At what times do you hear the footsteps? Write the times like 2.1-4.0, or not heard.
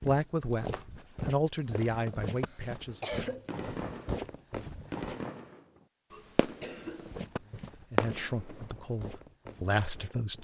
0.0-5.2, 6.8-10.3.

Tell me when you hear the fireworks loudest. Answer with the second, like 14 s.
8 s.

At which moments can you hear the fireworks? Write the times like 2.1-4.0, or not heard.
2.8-9.2.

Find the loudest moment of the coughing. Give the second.
3 s.